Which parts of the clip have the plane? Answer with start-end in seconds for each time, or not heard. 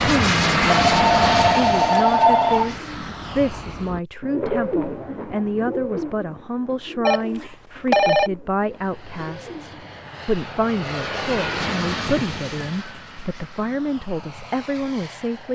0.0-4.0, 8.6-15.5.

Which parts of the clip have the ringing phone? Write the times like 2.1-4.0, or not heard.
0.6-2.8, 7.0-8.3, 12.1-12.8.